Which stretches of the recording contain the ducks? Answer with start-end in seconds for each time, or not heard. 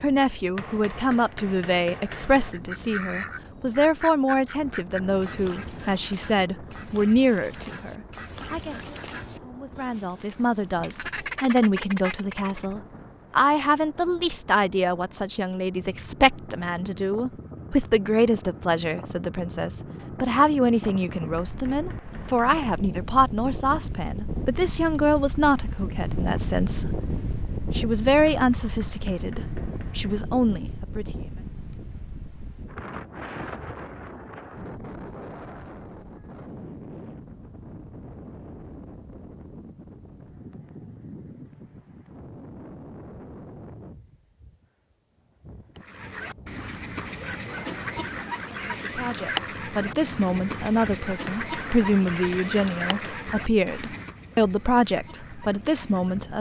2.0-12.8, 45.8-56.3.